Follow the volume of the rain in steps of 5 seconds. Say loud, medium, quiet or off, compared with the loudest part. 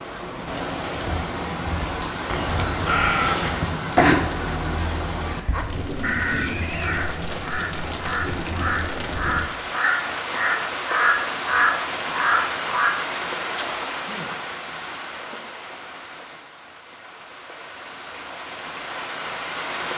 loud, loud, loud, medium.